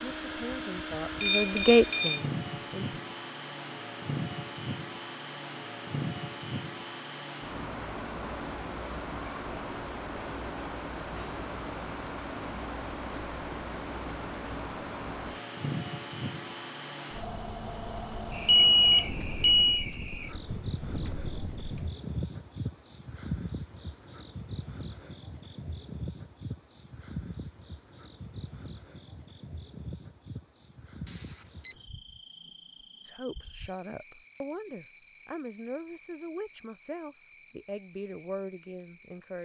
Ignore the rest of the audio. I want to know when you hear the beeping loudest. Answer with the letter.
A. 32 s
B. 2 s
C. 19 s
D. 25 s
C.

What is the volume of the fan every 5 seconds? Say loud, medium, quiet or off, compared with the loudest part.
loud, loud, loud, loud, medium, off, off, off.